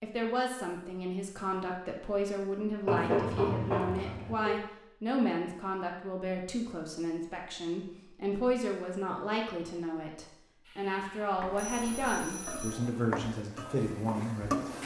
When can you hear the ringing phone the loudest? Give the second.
3 s.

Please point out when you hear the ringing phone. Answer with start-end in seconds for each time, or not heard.
2.9-4.6, 11.4-12.8.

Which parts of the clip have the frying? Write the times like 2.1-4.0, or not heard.
10.7-14.8.